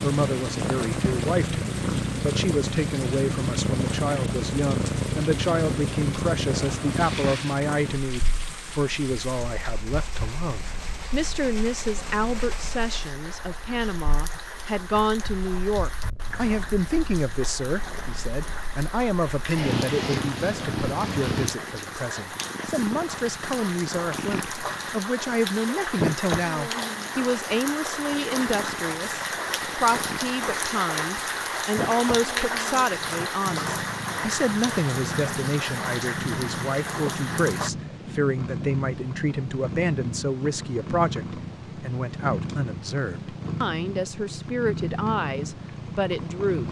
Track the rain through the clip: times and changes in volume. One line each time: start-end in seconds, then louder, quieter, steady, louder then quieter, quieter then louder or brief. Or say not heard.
0.0-37.7 louder.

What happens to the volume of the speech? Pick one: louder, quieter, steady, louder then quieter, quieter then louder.
steady.